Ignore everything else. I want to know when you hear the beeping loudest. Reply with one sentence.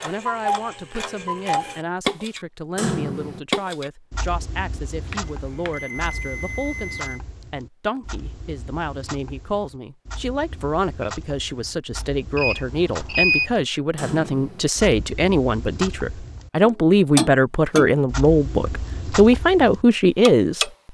The loudest moment of the beeping is at 13 seconds.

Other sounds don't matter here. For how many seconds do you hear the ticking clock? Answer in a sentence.
You can hear the ticking clock for 21 seconds altogether.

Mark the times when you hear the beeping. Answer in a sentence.
You can hear the beeping from 5.1 to 7.2 s and from 12.3 to 13.5 s.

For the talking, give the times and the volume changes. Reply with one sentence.
The talking can be heard from 0.0 to 20.7 s, getting louder.